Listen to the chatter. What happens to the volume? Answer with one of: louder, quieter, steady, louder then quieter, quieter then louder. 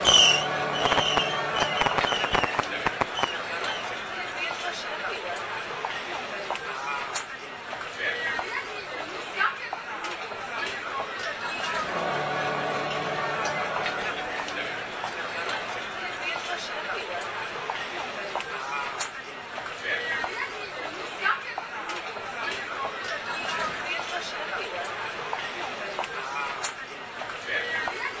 steady.